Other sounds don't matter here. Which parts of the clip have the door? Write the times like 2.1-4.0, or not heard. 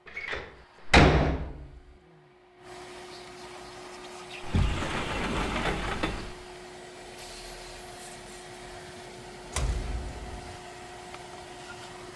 0.1-1.7, 4.4-6.3, 9.5-10.6.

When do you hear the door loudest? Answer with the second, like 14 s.
1 s.